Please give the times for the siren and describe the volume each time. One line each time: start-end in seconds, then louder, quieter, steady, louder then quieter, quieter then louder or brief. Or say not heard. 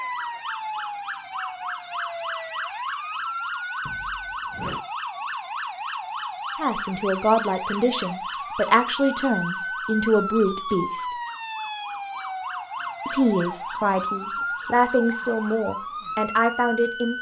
0.0-17.1 steady.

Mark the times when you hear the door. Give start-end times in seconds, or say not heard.
3.9-4.8.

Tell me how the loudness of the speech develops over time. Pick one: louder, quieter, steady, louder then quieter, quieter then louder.
steady.